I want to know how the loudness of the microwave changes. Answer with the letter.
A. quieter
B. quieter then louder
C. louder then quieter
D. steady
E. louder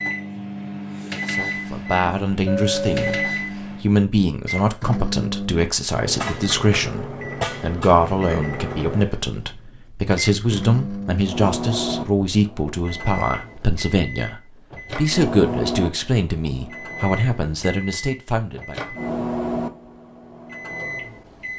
D.